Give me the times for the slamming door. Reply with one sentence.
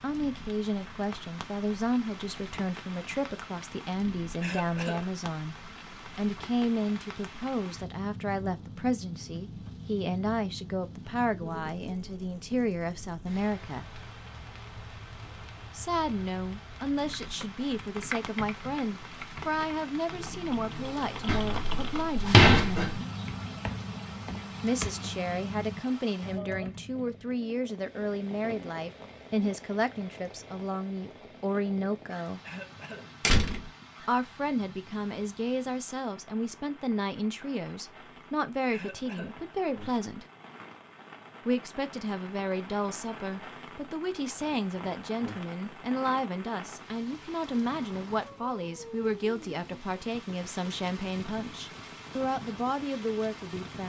You can hear the slamming door from 21.2 to 23.0 s and from 33.2 to 33.6 s.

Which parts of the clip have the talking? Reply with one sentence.
You can hear the talking from 0.0 to 5.5 s, from 6.2 to 13.8 s, from 15.8 to 22.9 s, from 24.6 to 32.4 s, from 34.0 to 40.2 s and from 41.5 to 53.8 s.